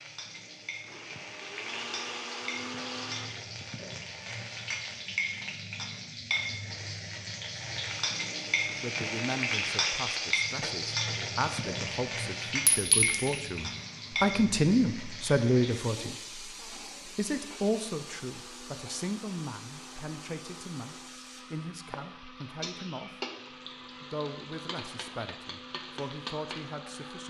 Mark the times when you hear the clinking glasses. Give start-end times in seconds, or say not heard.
12.7-13.3.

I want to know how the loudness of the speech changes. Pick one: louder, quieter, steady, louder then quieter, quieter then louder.
louder then quieter.